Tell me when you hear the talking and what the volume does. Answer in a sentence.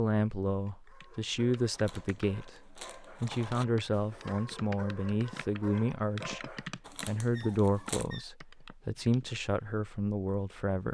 You can hear the talking from 0.0 to 10.8 s, at a steady volume.